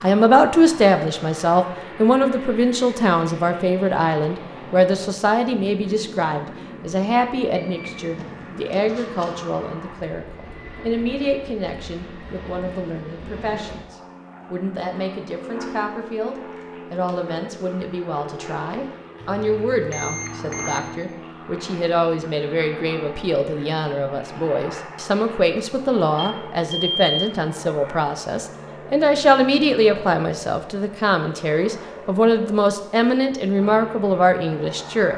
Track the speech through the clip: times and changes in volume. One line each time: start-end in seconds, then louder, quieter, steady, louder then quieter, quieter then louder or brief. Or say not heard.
0.0-35.1 quieter then louder.